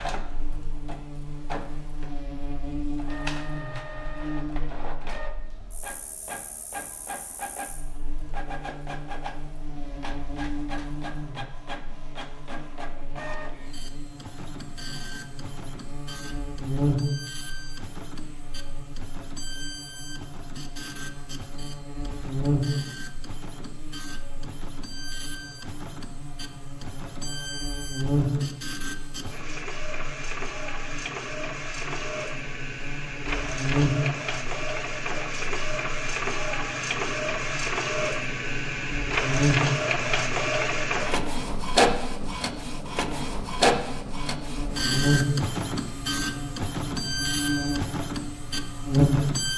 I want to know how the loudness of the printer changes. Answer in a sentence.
The volume of the printer goes up.